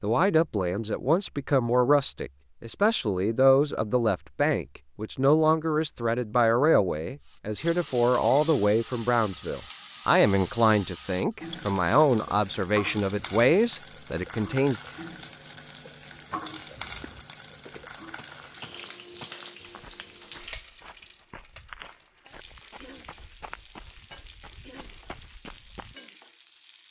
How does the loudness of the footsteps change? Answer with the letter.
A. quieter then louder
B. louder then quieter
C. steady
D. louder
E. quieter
C.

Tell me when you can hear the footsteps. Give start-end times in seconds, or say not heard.
16.8-25.9.